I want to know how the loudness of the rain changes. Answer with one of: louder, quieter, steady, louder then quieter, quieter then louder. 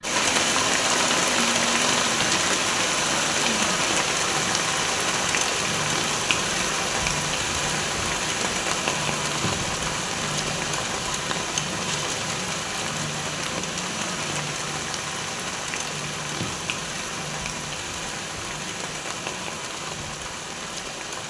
quieter.